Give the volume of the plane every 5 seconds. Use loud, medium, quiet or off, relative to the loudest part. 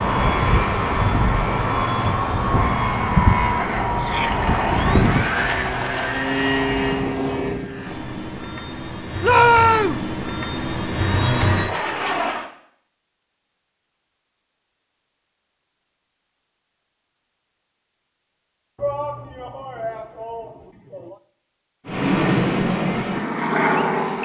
loud, loud, loud, off, loud.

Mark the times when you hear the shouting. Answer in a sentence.
You can hear the shouting from 4.0 to 4.4 s, from 9.2 to 10.1 s and from 18.8 to 21.2 s.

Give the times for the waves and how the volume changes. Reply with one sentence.
The waves can't be heard in this clip.